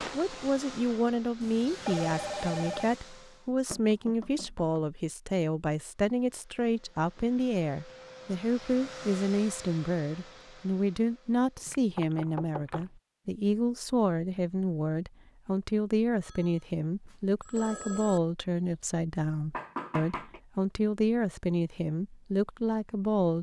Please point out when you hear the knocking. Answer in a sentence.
You can hear the knocking from 3.6 to 4.8 s, from 11.6 to 12.9 s and from 19.5 to 20.4 s.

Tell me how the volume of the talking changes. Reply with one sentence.
The volume of the talking stays about the same.